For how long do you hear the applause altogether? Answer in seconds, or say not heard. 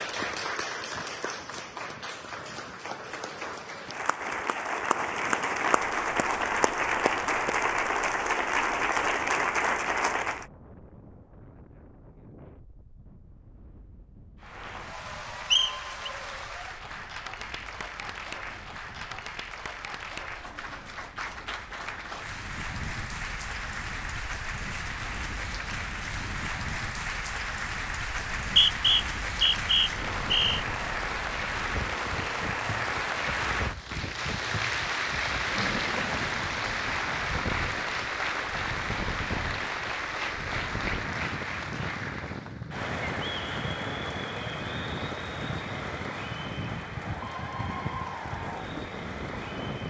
46 s.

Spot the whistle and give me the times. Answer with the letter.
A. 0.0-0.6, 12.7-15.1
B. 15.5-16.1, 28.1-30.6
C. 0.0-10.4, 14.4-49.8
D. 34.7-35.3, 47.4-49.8
B.